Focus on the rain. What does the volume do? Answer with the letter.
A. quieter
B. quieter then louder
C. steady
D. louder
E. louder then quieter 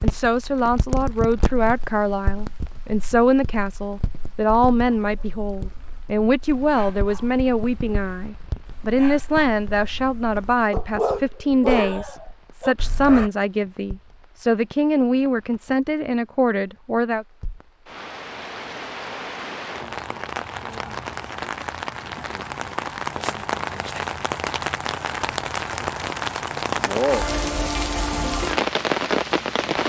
B.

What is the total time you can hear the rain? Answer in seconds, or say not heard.
30 s.